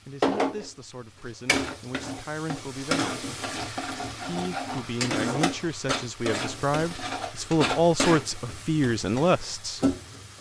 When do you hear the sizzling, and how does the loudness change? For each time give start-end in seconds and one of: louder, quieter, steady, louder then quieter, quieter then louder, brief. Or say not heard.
0.2-10.3 steady.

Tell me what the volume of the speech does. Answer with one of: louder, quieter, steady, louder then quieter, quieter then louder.
louder.